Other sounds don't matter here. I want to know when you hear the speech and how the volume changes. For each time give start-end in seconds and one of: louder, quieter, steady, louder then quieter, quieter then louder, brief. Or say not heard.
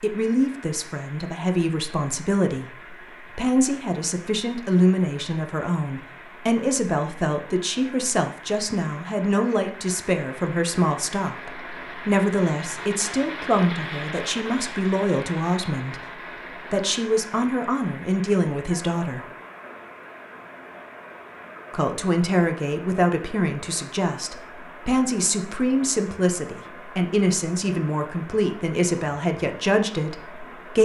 0.0-19.2 steady
21.7-30.8 steady.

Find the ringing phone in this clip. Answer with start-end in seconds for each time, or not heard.
not heard.